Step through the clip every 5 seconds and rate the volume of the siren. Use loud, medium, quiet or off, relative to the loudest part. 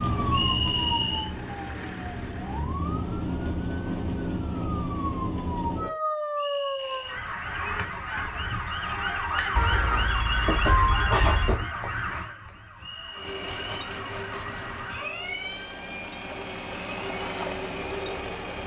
loud, loud, loud, medium.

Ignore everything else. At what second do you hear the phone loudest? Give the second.
11 s.